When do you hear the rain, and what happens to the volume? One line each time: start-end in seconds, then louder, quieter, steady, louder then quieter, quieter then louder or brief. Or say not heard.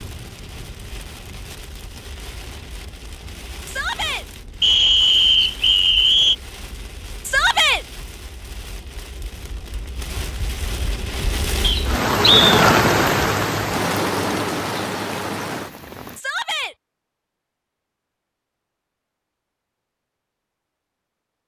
0.0-16.2 louder.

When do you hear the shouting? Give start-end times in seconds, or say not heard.
3.6-4.2, 7.2-7.8, 16.1-16.8.